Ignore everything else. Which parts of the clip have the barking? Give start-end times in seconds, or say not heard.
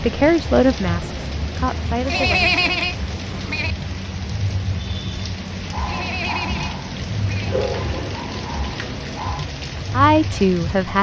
5.7-9.4.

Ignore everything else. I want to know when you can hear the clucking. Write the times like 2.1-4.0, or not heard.
not heard.